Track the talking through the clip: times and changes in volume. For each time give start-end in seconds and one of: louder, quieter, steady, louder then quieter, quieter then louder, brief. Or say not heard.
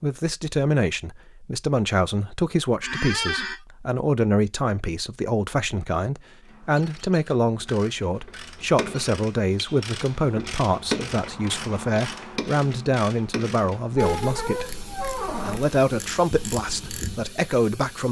0.0-18.0 steady.